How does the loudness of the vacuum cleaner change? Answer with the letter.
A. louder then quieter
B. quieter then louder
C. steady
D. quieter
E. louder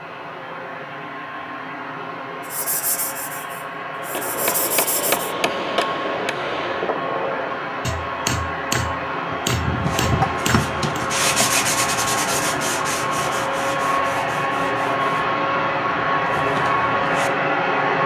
E.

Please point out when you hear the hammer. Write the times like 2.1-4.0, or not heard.
4.0-11.1.